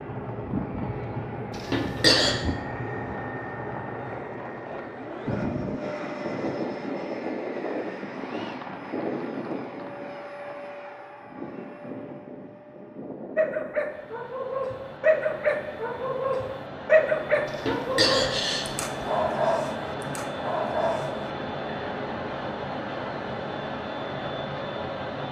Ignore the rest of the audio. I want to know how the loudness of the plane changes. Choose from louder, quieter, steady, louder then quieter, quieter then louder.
quieter then louder.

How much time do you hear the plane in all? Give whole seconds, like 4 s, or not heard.
25 s.